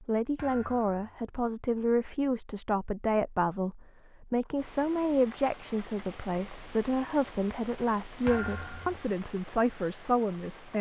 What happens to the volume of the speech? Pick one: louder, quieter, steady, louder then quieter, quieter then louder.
steady.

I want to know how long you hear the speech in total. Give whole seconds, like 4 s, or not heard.
11 s.